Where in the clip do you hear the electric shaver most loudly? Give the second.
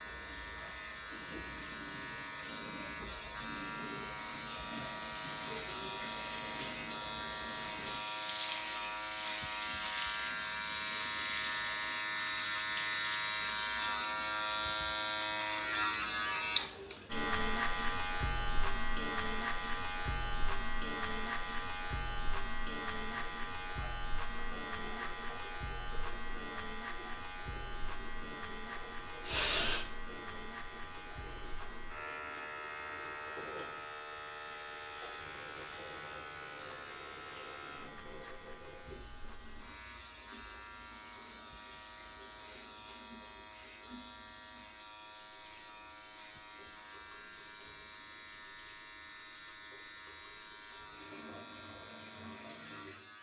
16 s.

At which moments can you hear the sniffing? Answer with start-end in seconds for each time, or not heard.
29.2-29.9.